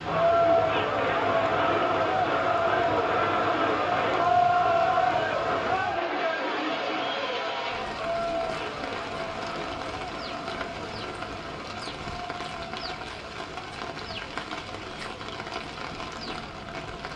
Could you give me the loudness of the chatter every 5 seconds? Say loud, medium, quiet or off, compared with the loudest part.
loud, medium, quiet, quiet.